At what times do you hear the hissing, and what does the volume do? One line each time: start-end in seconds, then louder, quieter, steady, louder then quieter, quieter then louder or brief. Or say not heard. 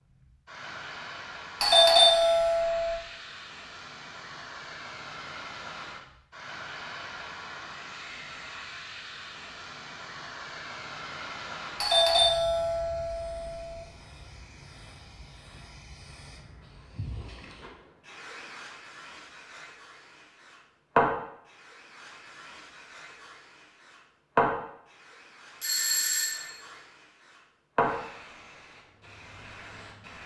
0.1-30.2 quieter then louder.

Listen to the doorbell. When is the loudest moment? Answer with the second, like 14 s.
2 s.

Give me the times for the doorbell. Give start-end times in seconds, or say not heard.
1.6-3.0, 11.8-13.8, 25.6-26.5.